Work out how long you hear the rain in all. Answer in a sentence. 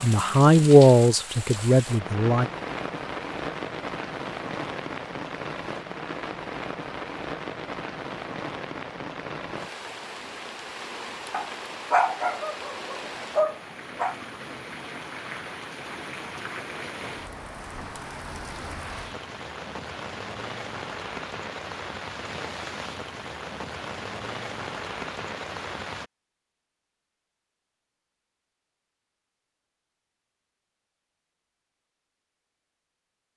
The rain can be heard for 26 seconds in total.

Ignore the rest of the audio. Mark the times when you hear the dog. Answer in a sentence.
You can hear the dog from 11.3 to 14.2 s.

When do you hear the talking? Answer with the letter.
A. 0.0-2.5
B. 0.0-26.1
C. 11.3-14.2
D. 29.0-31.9
A.